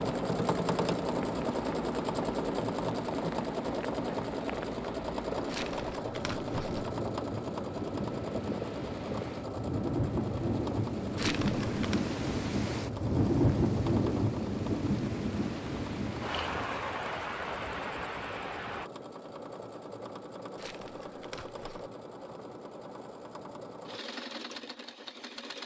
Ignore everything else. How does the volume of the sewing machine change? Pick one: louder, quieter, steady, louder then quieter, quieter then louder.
quieter.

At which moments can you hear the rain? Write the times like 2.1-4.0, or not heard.
0.0-18.9.